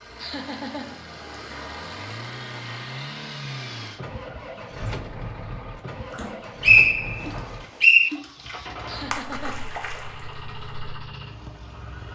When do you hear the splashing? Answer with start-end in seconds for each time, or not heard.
6.1-11.0.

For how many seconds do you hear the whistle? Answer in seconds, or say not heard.
2 s.